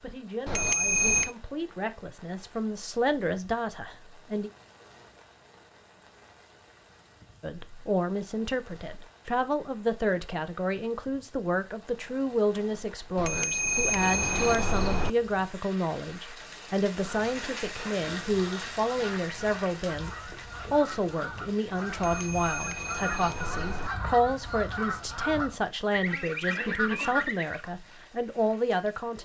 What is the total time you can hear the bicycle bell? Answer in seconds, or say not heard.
5 s.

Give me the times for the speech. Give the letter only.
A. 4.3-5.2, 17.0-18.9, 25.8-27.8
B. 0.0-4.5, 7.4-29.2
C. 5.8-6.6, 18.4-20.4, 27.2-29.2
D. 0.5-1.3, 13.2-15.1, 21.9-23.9
B.